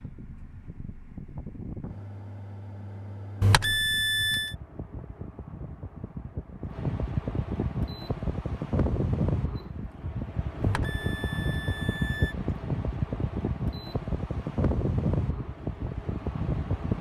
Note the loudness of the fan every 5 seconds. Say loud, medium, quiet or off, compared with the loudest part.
quiet, loud, loud, loud.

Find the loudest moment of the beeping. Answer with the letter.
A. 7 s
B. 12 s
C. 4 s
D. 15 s
C.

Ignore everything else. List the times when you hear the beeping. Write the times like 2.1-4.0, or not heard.
3.4-4.5, 10.6-12.3.